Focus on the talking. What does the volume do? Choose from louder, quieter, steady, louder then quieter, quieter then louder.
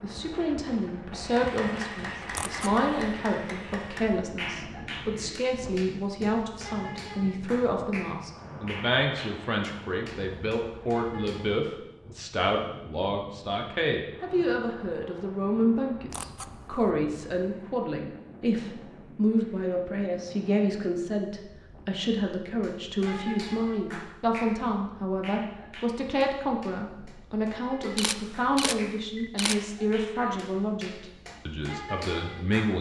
steady.